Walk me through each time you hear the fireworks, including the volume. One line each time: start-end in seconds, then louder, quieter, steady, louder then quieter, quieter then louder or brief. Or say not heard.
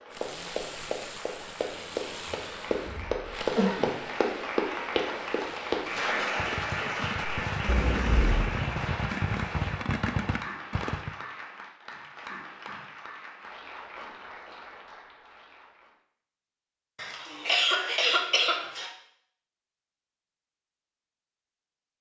0.1-11.1 louder.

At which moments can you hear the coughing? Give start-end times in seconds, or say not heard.
2.4-4.3, 7.7-8.5, 16.9-18.9.